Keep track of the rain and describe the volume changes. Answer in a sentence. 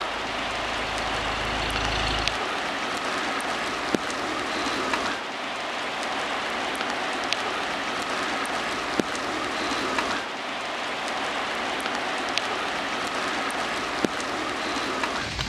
The loudness of the rain stays about the same.